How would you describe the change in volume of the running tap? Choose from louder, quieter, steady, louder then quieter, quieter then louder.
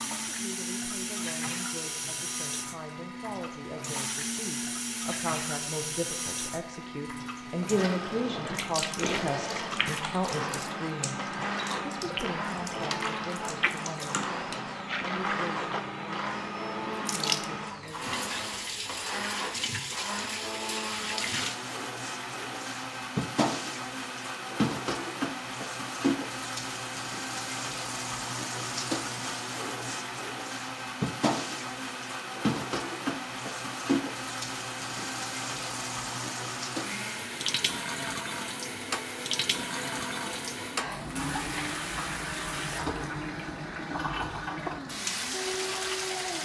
steady.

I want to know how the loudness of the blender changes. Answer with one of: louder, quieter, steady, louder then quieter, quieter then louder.
steady.